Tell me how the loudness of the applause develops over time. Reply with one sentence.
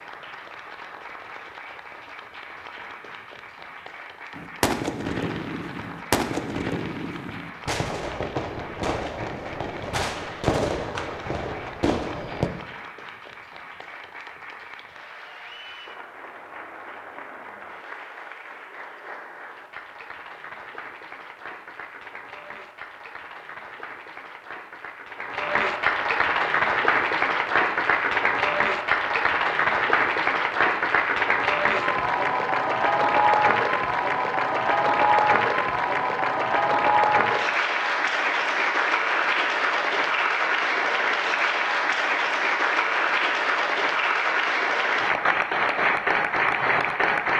The volume of the applause goes up.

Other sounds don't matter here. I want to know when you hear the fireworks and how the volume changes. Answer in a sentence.
The fireworks can be heard from 4.3 to 12.5 s, at a steady volume.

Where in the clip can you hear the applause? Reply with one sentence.
The applause can be heard from 0.0 to 47.3 s.